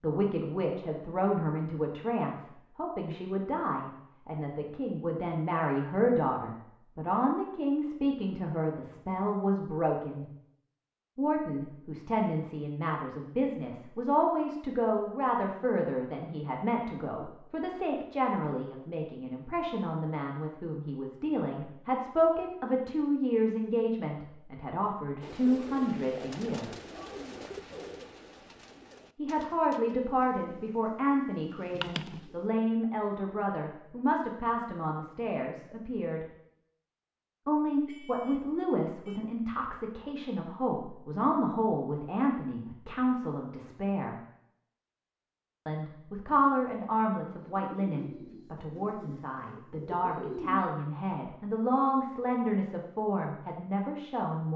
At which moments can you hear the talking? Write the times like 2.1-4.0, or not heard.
0.0-10.2, 11.2-26.7, 29.1-36.2, 37.5-44.1, 45.6-54.5.